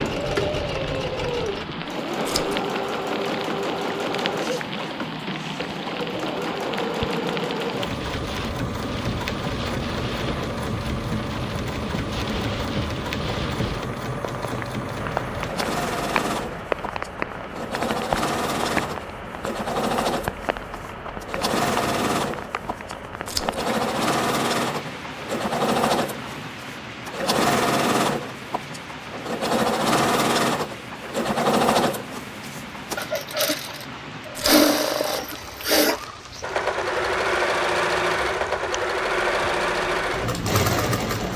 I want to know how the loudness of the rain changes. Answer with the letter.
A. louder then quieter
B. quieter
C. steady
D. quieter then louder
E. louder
B.